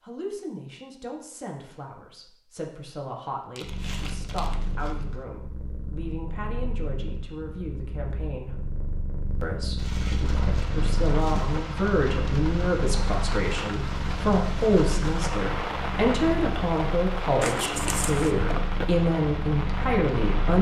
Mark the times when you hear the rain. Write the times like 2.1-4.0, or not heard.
10.2-20.5.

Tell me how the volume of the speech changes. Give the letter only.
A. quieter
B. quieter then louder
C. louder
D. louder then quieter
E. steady
C.